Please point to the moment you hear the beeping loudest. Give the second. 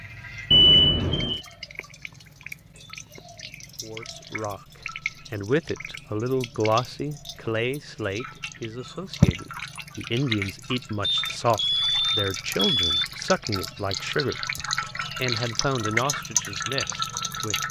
1 s.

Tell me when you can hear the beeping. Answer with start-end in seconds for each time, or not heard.
0.5-1.4, 11.0-13.1.